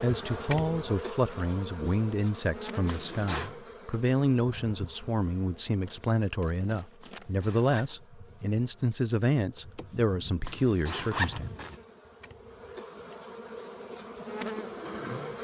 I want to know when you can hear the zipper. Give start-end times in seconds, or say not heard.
2.9-3.5, 7.0-8.0, 10.4-11.8.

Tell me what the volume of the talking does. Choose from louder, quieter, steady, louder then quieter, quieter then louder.
steady.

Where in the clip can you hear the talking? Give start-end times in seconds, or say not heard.
0.0-11.5.